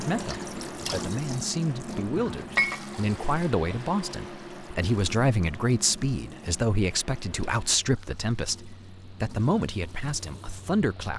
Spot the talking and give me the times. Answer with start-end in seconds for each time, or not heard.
0.0-11.1.